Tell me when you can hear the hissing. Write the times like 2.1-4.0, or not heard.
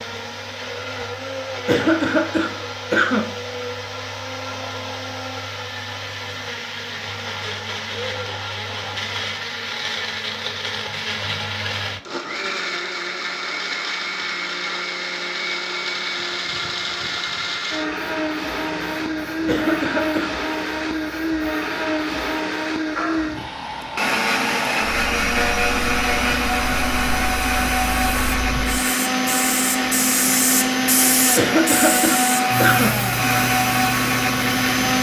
17.8-34.9.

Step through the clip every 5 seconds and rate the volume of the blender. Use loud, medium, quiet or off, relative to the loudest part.
medium, medium, medium, medium, loud, loud, loud.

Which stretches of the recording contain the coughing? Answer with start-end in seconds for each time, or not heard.
1.6-3.2, 19.4-20.3, 31.4-32.9.